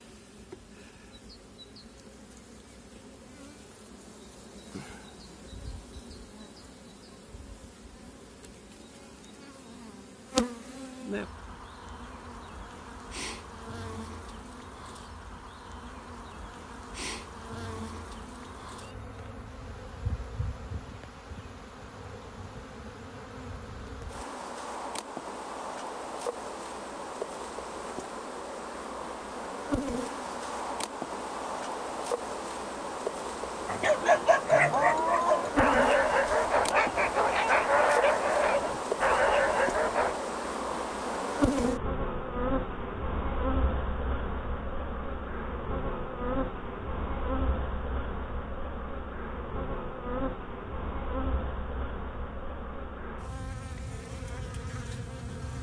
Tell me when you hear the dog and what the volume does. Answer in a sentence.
You can hear the dog from 33.6 to 40.2 s, at a steady volume.